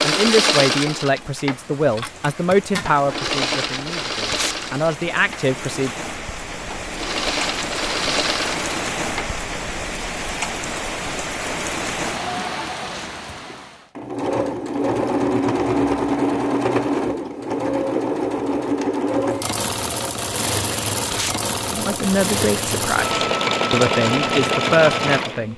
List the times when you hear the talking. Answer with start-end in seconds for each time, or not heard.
0.0-5.9, 21.7-25.5.